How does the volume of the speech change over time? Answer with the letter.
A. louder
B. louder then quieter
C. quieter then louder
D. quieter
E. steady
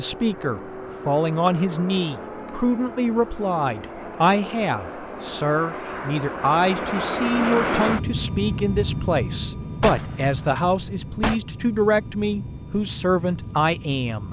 E.